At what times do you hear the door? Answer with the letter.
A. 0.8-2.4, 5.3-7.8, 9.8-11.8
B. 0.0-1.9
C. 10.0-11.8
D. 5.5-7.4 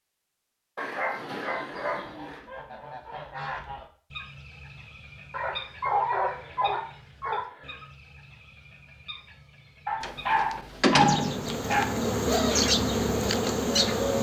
C.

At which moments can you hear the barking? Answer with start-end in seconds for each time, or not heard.
0.8-2.4, 5.3-7.8, 9.8-11.8.